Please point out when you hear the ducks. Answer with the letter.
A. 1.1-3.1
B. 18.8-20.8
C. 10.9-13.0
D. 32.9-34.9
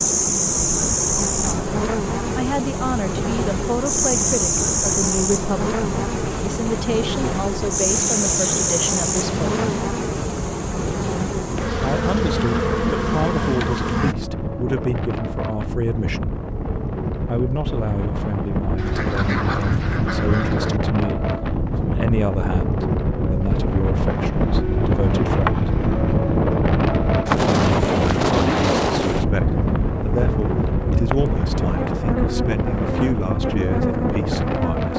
B.